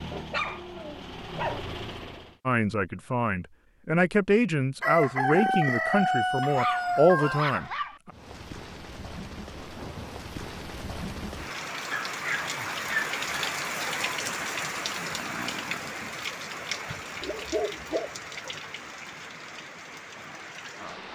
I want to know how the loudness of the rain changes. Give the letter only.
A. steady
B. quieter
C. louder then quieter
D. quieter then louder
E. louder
C.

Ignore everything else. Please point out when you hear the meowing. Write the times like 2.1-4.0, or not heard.
not heard.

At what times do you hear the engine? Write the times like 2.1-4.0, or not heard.
0.0-2.4.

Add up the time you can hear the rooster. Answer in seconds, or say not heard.
3 s.